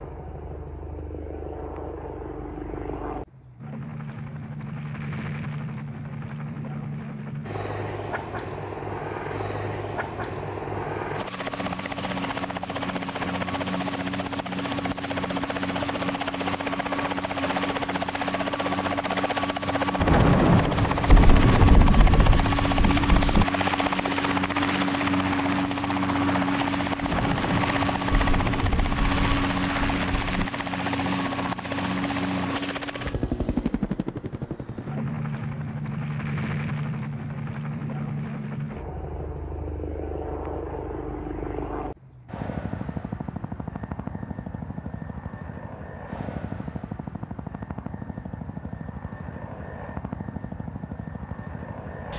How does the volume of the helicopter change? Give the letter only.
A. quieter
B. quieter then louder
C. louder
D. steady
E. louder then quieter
E.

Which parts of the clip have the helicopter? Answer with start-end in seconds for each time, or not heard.
0.0-52.1.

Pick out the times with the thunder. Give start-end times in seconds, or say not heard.
19.9-23.4, 27.0-30.5.